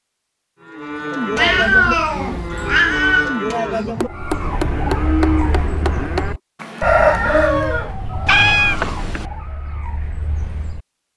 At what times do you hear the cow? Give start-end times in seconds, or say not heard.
0.6-8.0.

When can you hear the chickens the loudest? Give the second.
7 s.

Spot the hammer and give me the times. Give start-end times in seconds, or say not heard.
4.0-6.3.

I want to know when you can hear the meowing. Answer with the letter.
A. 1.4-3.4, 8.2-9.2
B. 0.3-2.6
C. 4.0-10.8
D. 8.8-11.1
A.